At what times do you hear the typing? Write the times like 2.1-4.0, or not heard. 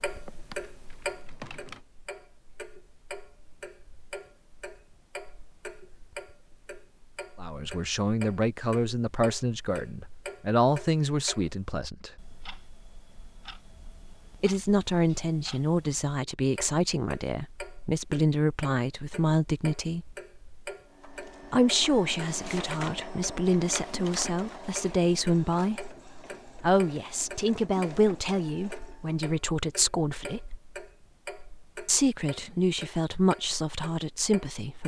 0.1-1.8.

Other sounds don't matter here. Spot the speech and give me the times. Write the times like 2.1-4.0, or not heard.
7.4-12.1, 14.4-20.1, 21.5-25.9, 26.6-30.6, 31.9-34.8.